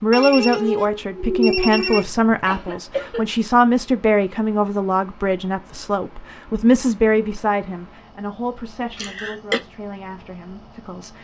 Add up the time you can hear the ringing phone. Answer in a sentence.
You can hear the ringing phone for 2 seconds altogether.